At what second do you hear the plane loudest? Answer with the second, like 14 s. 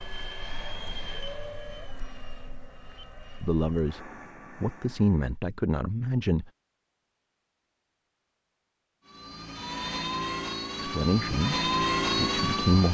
12 s.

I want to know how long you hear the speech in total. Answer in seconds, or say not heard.
5 s.